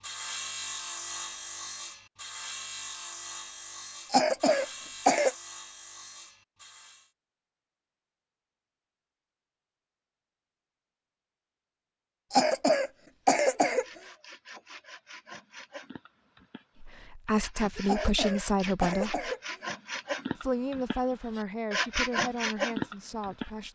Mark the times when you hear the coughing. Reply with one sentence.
The coughing can be heard from 4.1 to 5.3 s, from 12.3 to 13.8 s and from 17.9 to 19.6 s.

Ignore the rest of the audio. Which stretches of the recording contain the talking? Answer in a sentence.
The talking can be heard from 16.8 to 19.3 s and from 20.4 to 23.7 s.